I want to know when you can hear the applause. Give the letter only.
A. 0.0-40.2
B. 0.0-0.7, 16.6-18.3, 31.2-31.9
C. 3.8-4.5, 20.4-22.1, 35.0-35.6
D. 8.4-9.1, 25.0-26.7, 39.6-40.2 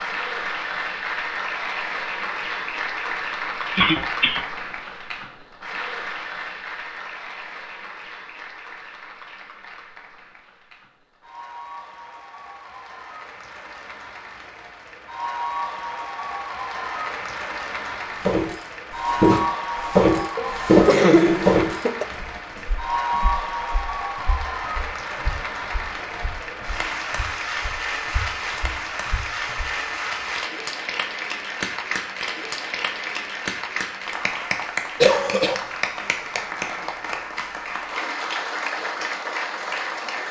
A.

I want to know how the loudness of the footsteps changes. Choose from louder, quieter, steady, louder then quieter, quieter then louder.
quieter then louder.